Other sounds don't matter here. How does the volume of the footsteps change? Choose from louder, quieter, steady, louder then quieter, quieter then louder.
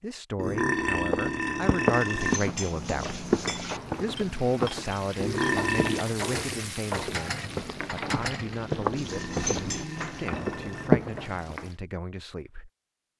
quieter then louder.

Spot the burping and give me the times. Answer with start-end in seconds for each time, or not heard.
0.3-2.4, 5.2-6.0, 9.0-10.9.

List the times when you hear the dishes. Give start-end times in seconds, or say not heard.
2.1-10.3.